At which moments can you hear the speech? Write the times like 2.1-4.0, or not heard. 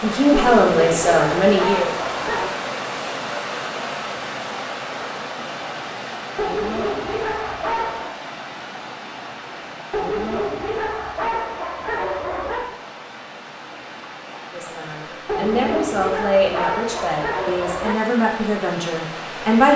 0.0-1.9, 14.5-19.7.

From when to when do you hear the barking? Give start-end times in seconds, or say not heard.
0.3-2.5, 6.3-8.2, 9.9-12.8, 15.2-18.0.